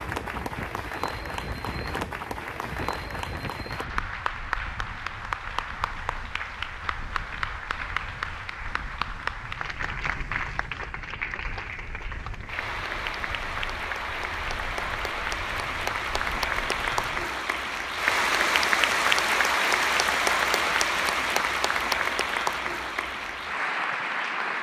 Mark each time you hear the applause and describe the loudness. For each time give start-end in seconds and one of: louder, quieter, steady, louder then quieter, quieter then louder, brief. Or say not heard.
0.0-24.5 louder.